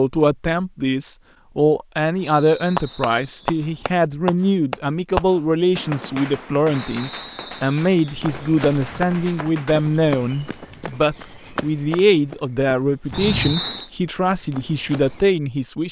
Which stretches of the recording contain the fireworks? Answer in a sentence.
You can hear the fireworks from 2.8 to 9.8 s.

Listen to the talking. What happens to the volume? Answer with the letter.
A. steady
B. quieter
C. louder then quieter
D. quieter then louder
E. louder
A.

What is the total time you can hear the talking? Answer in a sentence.
You can hear the talking for 16 seconds altogether.